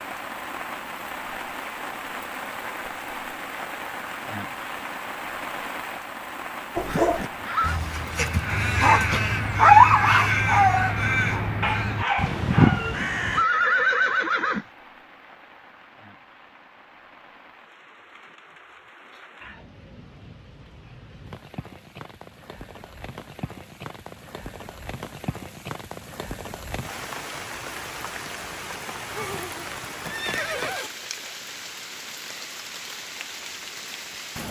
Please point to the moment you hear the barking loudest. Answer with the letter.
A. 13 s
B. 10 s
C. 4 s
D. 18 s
B.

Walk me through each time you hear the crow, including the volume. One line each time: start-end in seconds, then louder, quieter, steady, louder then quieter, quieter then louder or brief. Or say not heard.
6.8-13.4 louder.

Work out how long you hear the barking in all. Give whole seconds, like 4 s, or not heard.
6 s.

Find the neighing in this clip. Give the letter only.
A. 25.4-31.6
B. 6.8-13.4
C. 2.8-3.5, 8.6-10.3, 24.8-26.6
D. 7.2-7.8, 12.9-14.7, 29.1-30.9
D.